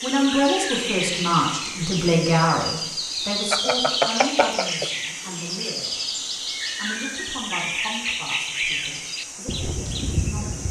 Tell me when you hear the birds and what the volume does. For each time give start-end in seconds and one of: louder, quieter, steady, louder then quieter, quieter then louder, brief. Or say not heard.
0.0-10.6 steady.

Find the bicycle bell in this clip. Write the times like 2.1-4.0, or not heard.
3.5-4.9.